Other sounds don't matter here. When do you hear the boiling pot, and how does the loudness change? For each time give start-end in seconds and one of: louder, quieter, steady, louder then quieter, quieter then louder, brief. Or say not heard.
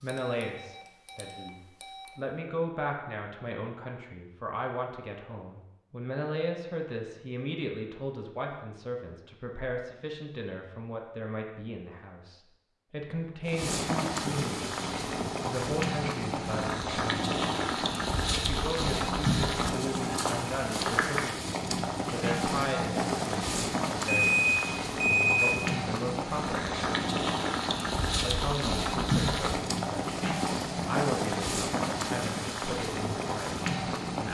13.4-34.3 steady.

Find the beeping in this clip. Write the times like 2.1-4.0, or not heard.
0.1-2.0, 24.1-25.5.